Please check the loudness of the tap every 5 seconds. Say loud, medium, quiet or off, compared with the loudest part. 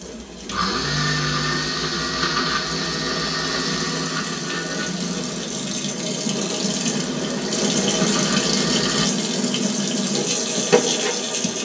medium, loud, loud.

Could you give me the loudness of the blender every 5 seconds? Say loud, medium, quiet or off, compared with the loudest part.
loud, medium, off.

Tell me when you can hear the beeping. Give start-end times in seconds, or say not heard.
not heard.